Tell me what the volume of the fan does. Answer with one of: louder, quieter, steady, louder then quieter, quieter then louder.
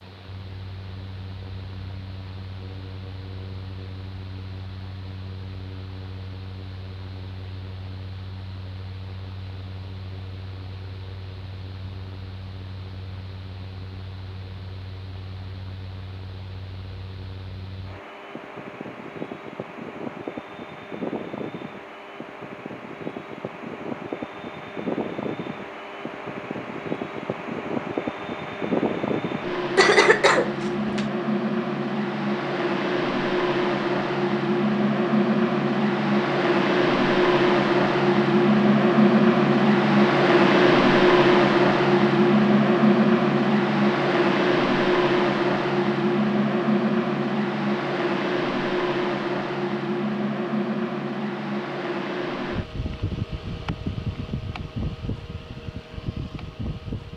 louder then quieter.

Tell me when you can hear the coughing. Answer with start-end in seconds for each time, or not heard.
29.8-31.1.